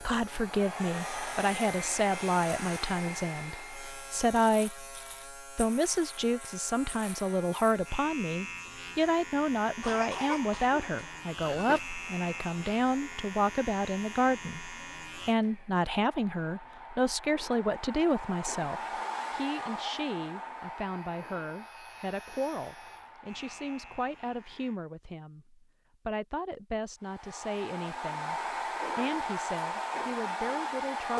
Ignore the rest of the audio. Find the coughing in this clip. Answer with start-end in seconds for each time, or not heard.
9.8-11.8.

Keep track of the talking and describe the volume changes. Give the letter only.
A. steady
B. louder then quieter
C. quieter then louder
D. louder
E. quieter
E.